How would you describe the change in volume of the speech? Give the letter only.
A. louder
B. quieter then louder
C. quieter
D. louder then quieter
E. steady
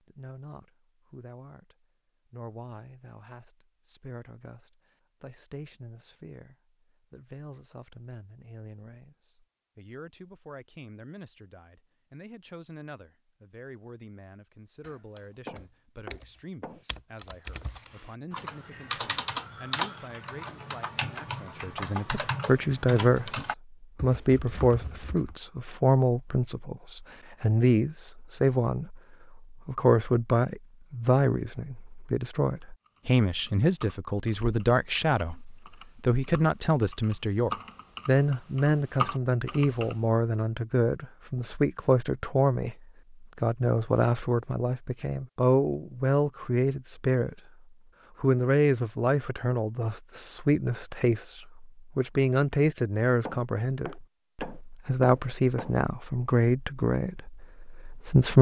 A.